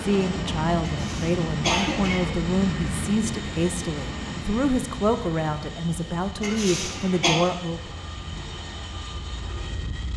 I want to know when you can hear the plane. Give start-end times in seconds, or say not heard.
0.0-10.1.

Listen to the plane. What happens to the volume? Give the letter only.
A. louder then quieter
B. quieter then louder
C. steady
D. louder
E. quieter
E.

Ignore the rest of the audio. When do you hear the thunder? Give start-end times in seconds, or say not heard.
not heard.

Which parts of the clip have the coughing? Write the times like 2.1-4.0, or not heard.
0.9-2.4, 6.4-7.3.